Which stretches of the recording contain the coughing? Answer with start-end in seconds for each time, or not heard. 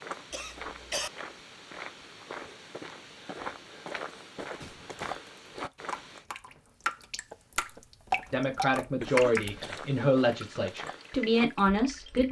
0.3-1.1, 4.6-5.2, 9.0-9.8.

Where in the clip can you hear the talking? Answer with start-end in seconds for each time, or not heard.
8.3-12.2.